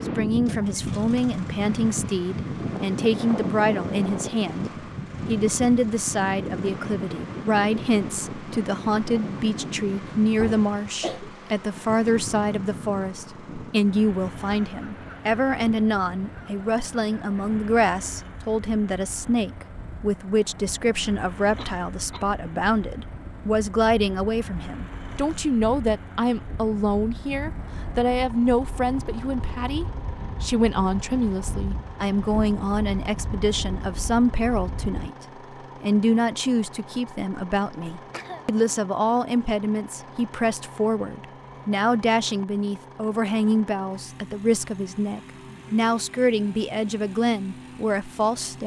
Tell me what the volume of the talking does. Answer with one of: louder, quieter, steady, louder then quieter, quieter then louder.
steady.